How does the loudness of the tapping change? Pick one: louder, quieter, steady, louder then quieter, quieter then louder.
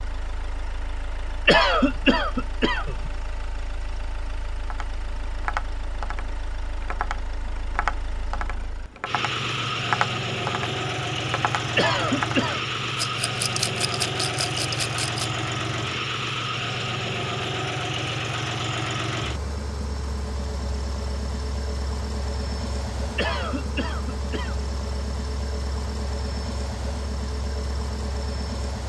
louder then quieter.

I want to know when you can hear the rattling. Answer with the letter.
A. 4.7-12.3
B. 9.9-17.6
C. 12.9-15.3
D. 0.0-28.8
C.